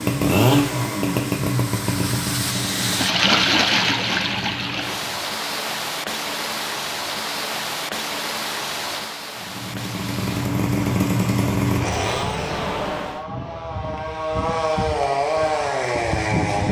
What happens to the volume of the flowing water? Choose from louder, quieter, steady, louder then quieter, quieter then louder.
louder then quieter.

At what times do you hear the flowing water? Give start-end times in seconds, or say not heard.
0.0-13.2.